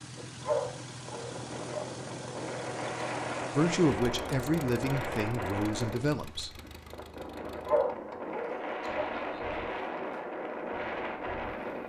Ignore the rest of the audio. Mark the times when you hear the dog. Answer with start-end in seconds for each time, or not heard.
0.4-1.9, 7.7-9.1.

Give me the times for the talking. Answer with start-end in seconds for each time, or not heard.
3.5-6.5.